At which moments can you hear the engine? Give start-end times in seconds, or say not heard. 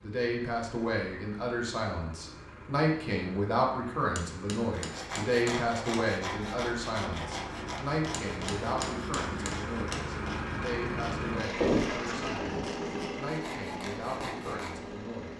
0.0-15.3.